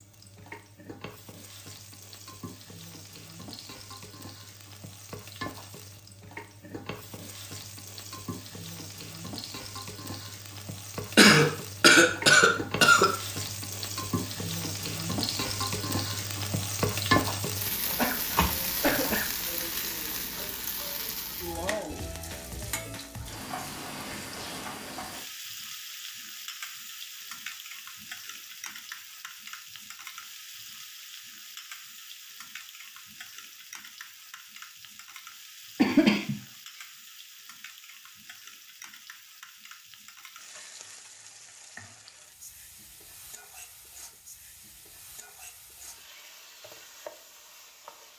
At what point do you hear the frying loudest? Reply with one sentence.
The loudest moment of the frying is at 17 seconds.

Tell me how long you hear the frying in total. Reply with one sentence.
You can hear the frying for 48 seconds altogether.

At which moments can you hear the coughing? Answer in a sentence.
You can hear the coughing from 11.2 to 13.1 s, from 17.9 to 19.5 s and from 35.8 to 36.4 s.